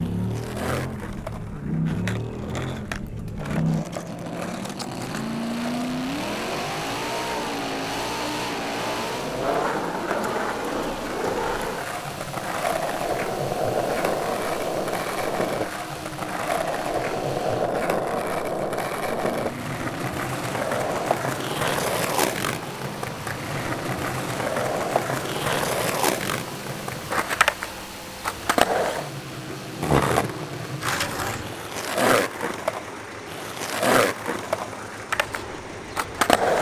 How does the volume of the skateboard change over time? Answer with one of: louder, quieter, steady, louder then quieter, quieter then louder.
louder.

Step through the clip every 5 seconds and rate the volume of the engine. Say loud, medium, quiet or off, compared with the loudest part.
loud, loud, medium, medium, medium, medium, medium, medium.